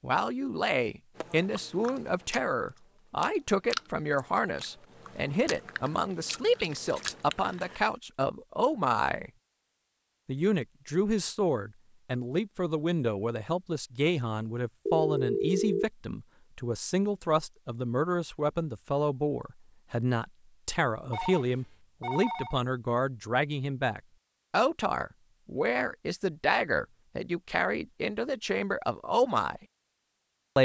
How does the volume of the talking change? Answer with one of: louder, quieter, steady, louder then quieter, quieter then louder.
steady.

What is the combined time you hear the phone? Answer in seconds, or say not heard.
4 s.